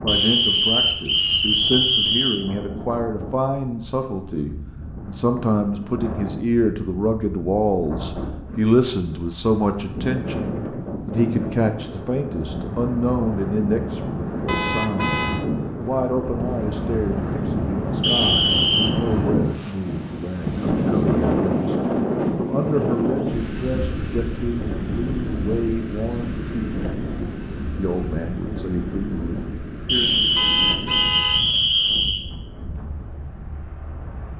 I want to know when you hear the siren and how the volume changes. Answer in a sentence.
You can't hear the siren here.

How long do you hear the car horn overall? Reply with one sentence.
The car horn can be heard for 2 seconds in total.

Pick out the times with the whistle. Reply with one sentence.
The whistle can be heard from 0.1 to 2.5 s, from 18.0 to 18.9 s and from 29.9 to 32.2 s.